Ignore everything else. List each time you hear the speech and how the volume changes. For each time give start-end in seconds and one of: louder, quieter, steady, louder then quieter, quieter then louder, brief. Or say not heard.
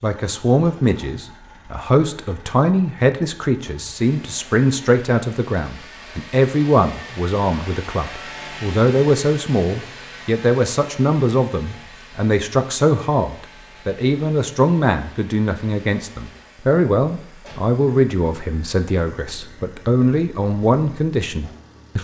0.0-21.9 steady.